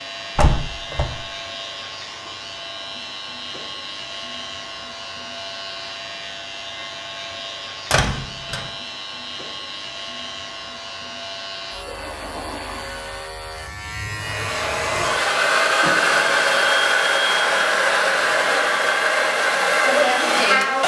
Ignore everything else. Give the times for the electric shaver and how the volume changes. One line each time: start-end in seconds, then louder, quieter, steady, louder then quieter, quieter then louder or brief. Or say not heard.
0.0-15.3 steady.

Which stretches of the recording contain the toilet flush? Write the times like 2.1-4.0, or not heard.
11.7-13.3.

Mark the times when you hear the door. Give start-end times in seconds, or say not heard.
0.3-1.1, 7.9-8.6, 15.8-16.5.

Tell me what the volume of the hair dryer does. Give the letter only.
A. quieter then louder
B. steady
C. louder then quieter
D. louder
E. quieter
B.